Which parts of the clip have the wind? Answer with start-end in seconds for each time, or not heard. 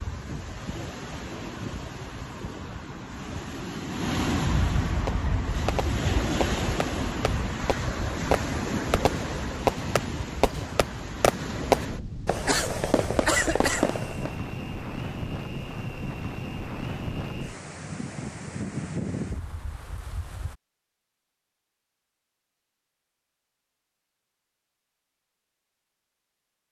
0.0-20.6.